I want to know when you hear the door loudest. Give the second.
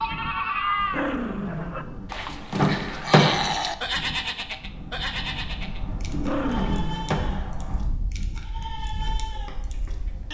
3 s.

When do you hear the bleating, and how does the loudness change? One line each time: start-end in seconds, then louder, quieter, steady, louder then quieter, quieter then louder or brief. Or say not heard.
0.0-10.2 quieter.